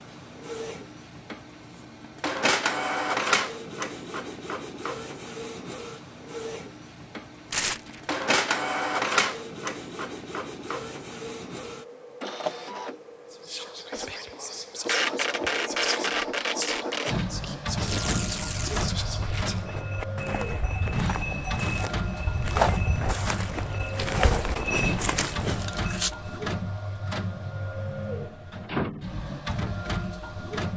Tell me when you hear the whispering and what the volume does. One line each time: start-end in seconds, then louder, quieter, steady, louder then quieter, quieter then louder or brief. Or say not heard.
13.3-19.8 steady.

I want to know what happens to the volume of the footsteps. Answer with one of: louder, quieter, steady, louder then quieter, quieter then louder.
louder.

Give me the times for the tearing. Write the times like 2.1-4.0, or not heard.
7.5-8.0, 17.8-18.9, 25.2-26.1.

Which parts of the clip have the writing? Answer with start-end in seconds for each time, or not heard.
not heard.